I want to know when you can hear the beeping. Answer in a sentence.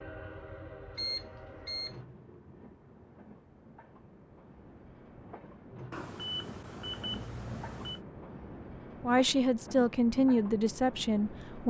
You can hear the beeping from 0.9 to 1.9 s and from 5.9 to 8.0 s.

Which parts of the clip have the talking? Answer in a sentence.
The talking can be heard from 9.0 to 11.6 s.